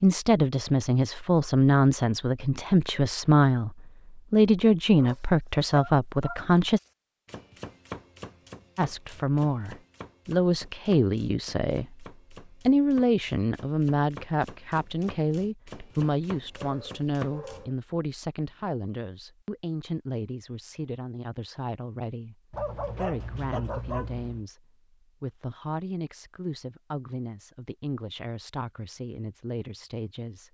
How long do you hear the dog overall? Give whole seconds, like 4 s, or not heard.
6 s.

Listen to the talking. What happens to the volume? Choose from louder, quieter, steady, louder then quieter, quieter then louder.
quieter.